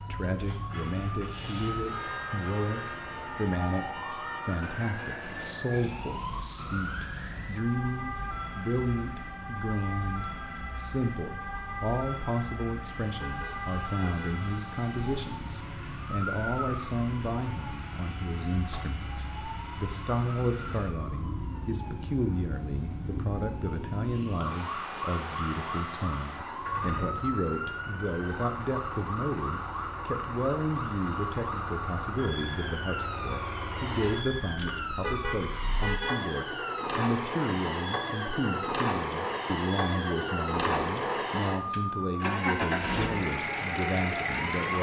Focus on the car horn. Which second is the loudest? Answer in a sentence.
The loudest moment of the car horn is at 36 seconds.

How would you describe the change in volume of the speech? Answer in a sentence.
The loudness of the speech stays about the same.